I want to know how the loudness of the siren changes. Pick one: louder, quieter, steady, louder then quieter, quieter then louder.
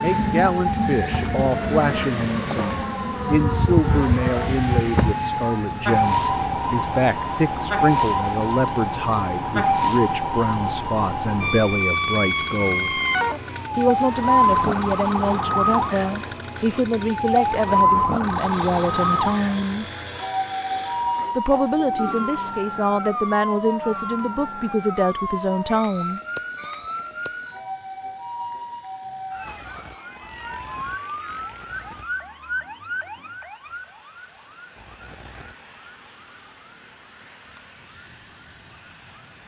quieter.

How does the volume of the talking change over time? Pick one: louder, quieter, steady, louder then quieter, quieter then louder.
steady.